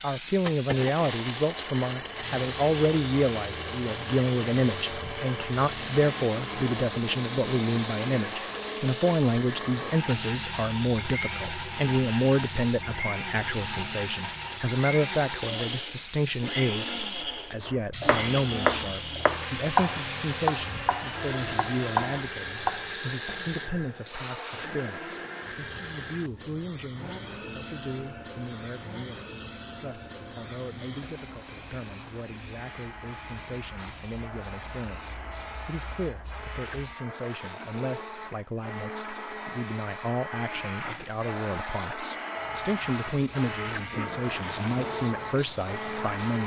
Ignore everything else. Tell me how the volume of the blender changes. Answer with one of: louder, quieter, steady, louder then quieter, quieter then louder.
quieter then louder.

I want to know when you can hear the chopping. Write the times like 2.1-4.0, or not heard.
17.6-23.6.